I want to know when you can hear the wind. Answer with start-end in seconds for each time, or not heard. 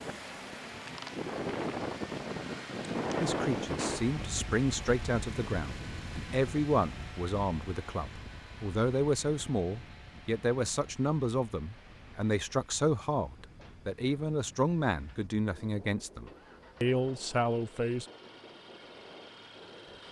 0.0-20.0.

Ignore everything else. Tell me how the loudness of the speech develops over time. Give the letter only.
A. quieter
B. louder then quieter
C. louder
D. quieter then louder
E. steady
E.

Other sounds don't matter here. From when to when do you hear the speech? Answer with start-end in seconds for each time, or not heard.
3.2-18.1.